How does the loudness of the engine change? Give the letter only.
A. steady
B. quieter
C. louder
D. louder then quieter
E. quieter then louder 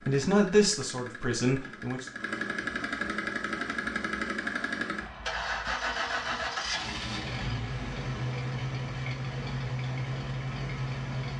C.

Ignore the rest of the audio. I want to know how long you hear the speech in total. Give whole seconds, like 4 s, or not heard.
2 s.